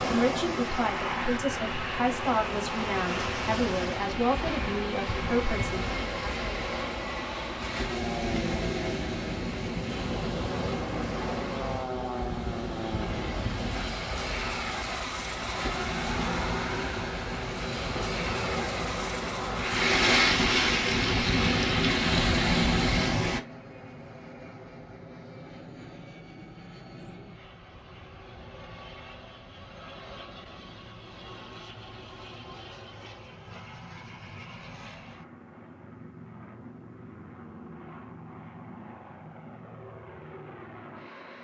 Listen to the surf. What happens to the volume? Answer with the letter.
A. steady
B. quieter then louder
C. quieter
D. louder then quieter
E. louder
E.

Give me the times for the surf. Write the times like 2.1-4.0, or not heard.
0.0-23.4.